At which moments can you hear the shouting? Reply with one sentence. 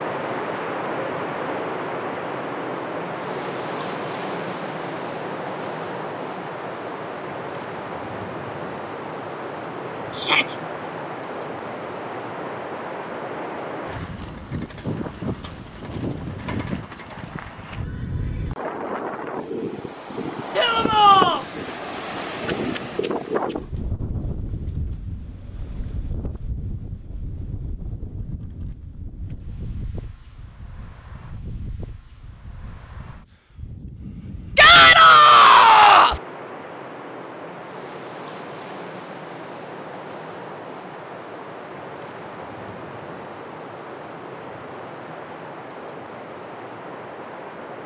The shouting can be heard from 10.2 to 10.6 s, from 20.6 to 21.4 s and from 34.5 to 36.2 s.